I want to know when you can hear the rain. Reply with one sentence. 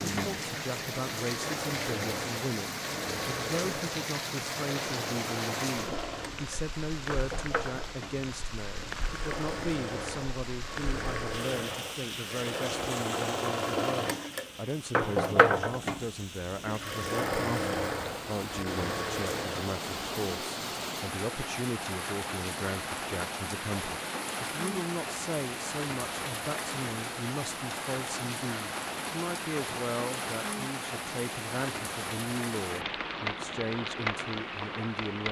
You can hear the rain from 0.0 to 35.2 s.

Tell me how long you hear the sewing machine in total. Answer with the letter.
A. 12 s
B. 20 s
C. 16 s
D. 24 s
B.